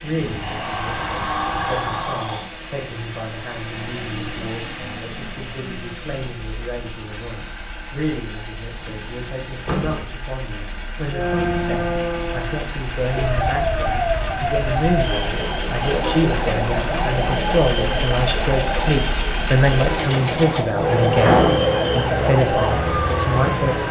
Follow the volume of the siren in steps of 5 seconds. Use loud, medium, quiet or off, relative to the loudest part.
off, off, loud, loud, loud.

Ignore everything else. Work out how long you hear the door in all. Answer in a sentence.
You can hear the door for 4 seconds altogether.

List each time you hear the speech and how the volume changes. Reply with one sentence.
You can hear the speech from 0.0 to 23.8 s, getting louder.